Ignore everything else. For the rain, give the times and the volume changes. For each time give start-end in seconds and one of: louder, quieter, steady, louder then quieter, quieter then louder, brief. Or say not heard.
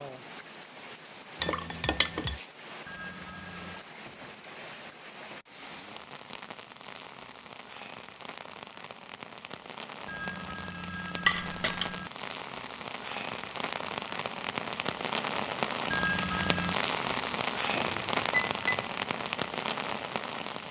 0.0-20.6 louder.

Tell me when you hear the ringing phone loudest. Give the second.
16 s.